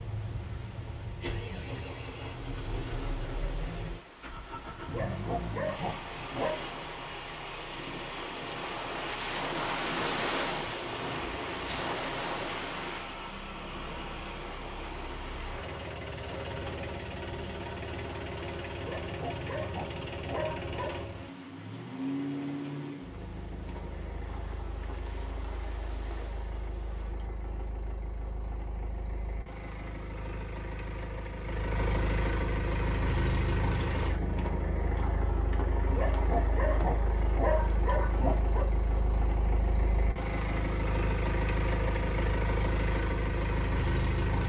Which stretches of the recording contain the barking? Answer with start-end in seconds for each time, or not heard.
4.8-6.6, 18.8-21.0, 35.9-38.7.